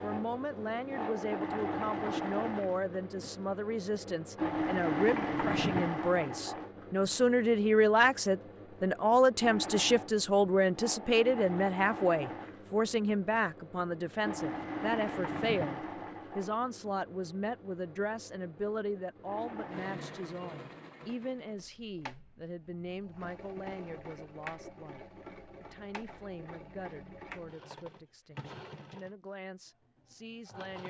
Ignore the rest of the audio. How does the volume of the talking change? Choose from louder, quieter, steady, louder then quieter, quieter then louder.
louder then quieter.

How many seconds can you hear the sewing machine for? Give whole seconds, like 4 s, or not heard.
31 s.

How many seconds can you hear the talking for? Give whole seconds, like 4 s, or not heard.
31 s.